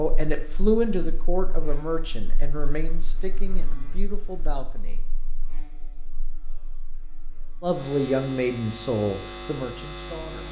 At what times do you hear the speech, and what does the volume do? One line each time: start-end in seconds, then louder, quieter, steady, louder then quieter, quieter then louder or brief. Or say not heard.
0.0-5.0 quieter
7.6-10.4 brief.